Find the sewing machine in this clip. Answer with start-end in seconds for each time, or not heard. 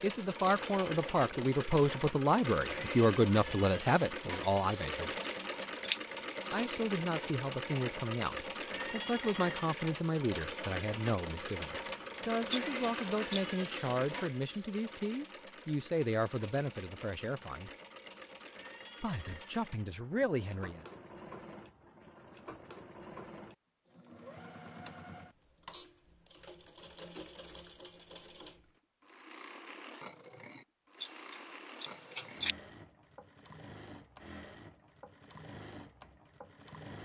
0.0-37.0.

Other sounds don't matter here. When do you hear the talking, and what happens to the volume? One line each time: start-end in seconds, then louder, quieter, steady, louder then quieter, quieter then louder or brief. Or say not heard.
0.0-5.1 steady
6.5-17.7 steady
19.0-20.9 brief.